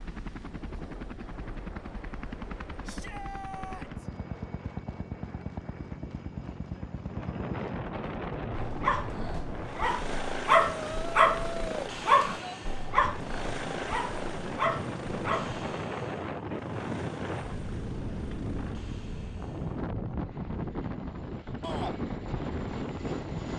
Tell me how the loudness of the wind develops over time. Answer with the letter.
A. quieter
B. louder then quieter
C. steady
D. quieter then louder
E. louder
E.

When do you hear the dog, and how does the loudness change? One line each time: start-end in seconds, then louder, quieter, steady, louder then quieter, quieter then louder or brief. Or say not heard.
8.5-15.6 louder then quieter.